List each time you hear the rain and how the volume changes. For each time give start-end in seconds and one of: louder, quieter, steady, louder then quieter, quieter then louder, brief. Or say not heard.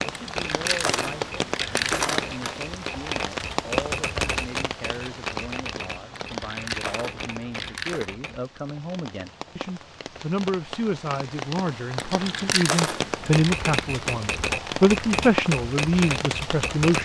0.0-17.0 quieter then louder.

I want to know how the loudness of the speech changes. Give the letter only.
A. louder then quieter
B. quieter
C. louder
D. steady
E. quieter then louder
C.